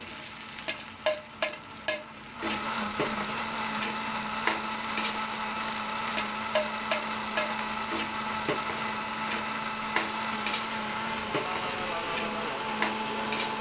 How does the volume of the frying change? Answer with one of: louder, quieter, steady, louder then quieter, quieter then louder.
steady.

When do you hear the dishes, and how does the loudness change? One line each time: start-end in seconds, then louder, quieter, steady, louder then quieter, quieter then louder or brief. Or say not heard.
not heard.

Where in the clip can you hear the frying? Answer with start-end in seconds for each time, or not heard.
0.0-13.5.